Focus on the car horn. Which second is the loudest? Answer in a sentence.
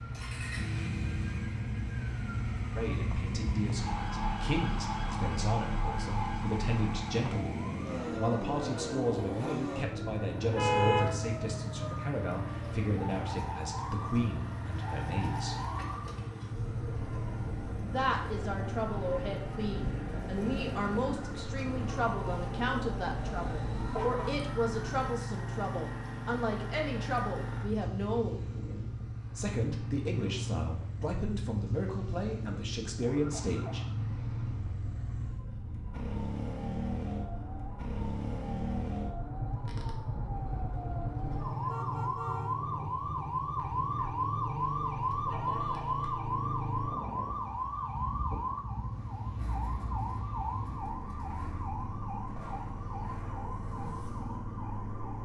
The volume of the car horn peaks at 11 seconds.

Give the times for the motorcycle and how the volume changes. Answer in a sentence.
You can hear the motorcycle from 0.0 to 55.2 s, at a steady volume.